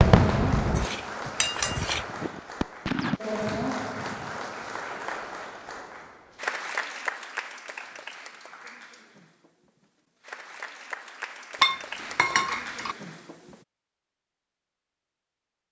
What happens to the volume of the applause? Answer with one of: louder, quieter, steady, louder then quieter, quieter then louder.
quieter then louder.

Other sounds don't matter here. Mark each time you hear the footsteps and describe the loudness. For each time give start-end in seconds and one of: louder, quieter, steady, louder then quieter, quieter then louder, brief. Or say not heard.
not heard.